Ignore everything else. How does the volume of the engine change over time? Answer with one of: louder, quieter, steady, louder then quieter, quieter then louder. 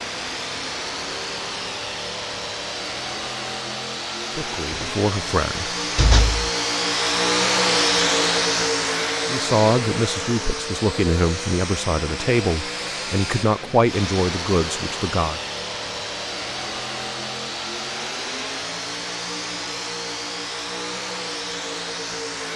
louder then quieter.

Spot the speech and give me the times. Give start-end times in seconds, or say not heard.
4.3-5.8, 9.2-15.4.